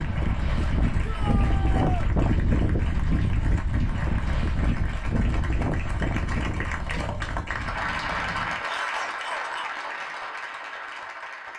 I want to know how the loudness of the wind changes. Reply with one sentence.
The volume of the wind goes down.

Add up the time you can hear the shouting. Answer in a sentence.
You can hear the shouting for 2 seconds altogether.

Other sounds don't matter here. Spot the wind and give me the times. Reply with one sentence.
The wind can be heard from 0.0 to 8.7 s.